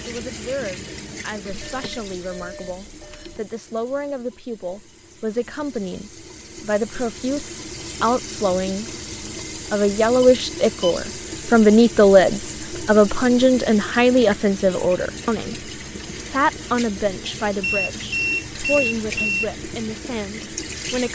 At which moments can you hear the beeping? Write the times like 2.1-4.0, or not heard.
1.5-3.4, 10.2-10.9, 17.6-19.6.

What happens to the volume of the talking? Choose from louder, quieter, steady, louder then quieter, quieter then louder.
louder then quieter.